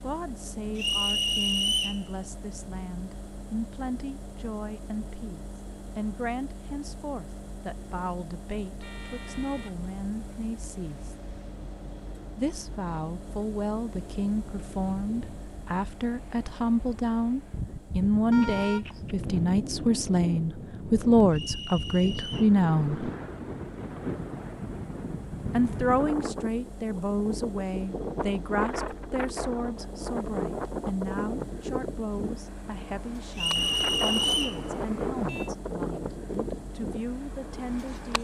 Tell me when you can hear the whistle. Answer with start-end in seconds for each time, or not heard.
0.8-2.0, 21.3-22.5, 33.4-34.6.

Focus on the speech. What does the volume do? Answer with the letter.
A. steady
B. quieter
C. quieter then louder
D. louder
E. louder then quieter
E.